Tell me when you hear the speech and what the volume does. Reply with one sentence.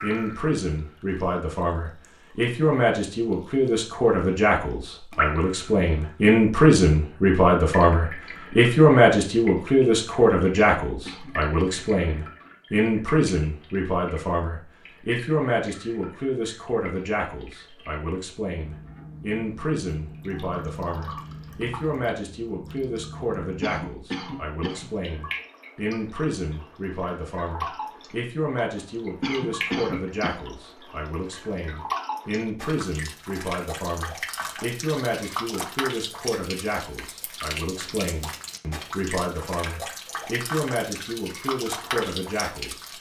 The speech can be heard from 0.0 to 42.9 s, getting quieter.